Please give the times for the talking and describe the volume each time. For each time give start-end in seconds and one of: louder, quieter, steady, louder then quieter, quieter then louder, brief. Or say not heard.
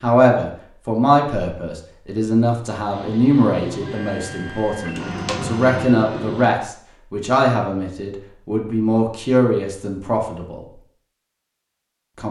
0.0-10.7 steady.